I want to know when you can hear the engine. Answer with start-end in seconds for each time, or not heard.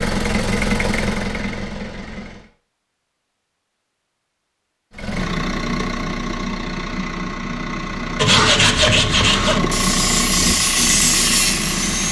0.0-2.5, 4.9-12.0.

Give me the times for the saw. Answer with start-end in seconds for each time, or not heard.
8.2-12.0.